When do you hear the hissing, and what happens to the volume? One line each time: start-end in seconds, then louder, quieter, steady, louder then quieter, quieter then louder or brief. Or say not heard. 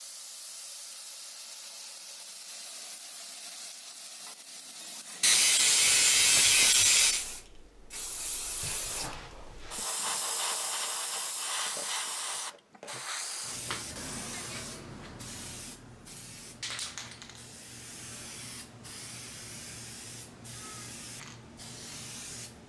0.0-22.6 louder then quieter.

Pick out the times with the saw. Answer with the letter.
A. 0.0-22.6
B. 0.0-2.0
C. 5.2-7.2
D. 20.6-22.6
C.